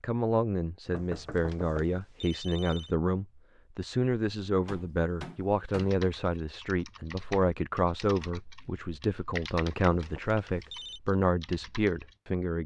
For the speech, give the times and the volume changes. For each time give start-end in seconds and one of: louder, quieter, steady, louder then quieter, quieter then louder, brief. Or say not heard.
0.0-12.6 steady.